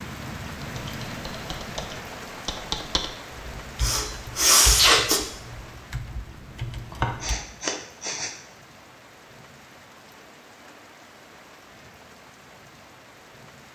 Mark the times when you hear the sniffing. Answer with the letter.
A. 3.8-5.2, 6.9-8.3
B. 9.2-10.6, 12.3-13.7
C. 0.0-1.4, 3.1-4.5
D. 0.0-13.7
A.